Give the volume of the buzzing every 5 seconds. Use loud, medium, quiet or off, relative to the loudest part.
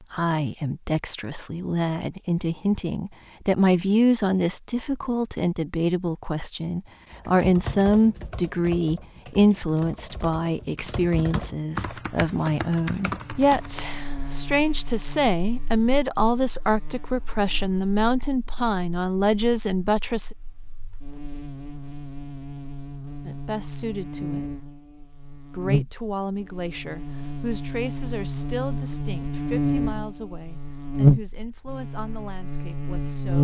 off, off, quiet, quiet, quiet, medium, loud.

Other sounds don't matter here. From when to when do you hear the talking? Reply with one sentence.
The talking can be heard from 0.1 to 20.3 s, from 23.2 to 24.4 s and from 25.6 to 33.4 s.